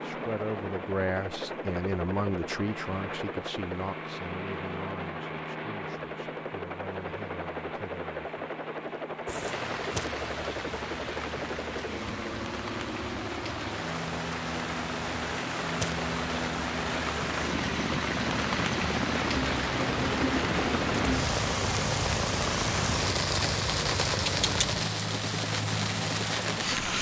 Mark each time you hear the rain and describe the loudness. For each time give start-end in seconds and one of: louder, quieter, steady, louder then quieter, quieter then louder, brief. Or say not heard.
9.2-26.9 louder.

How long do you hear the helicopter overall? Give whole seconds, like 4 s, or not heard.
27 s.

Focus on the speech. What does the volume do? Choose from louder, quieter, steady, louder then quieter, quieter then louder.
quieter.